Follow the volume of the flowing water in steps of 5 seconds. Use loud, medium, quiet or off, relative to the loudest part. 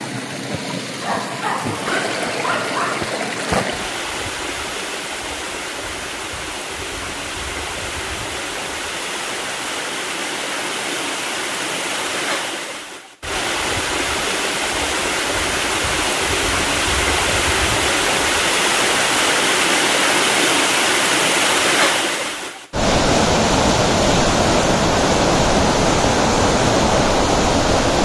medium, medium, medium, loud, loud, loud.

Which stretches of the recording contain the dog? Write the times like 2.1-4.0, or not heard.
1.0-3.0.